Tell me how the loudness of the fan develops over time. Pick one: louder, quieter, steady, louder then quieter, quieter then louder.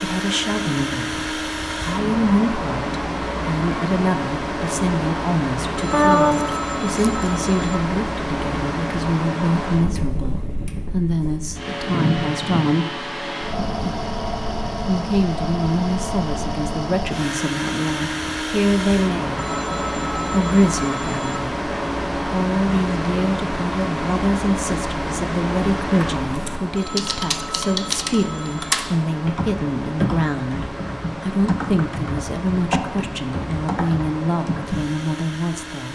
quieter.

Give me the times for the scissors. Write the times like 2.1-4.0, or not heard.
5.9-7.1.